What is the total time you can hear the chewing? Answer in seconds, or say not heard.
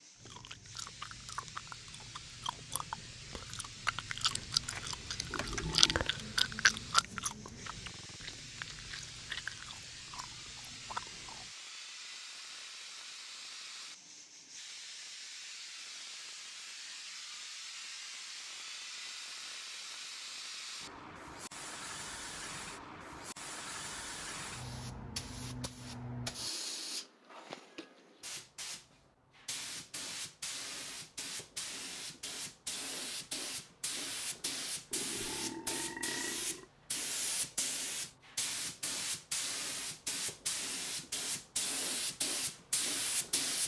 11 s.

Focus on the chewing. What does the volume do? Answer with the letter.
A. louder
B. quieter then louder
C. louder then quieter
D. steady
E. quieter
C.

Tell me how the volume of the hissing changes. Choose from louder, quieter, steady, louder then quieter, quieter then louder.
louder.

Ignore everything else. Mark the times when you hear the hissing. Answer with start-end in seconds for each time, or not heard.
0.0-43.6.